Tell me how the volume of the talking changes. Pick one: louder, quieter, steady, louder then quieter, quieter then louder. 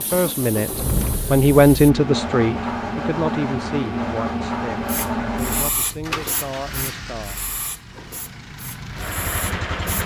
quieter.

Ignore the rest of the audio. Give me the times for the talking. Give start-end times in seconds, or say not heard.
0.0-7.4.